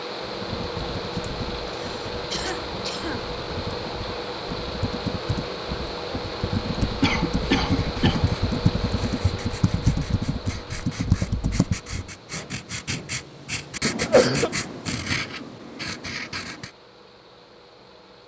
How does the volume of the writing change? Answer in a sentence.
The volume of the writing goes up.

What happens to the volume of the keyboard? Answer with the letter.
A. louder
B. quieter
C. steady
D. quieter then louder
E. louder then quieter
A.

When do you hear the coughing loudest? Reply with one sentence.
The volume of the coughing peaks at 14 seconds.